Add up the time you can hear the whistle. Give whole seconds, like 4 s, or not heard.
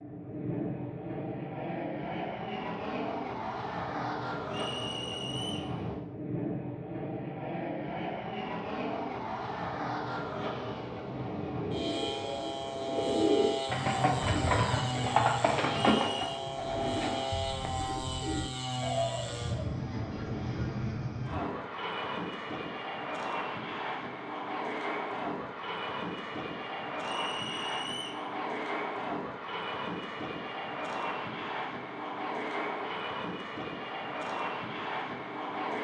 3 s.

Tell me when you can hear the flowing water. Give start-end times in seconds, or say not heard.
not heard.